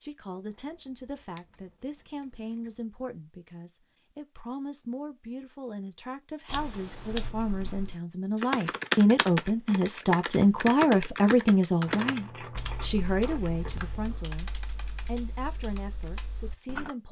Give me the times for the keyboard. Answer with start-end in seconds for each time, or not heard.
6.5-16.9.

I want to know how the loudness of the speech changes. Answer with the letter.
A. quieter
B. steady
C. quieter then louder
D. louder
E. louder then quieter
E.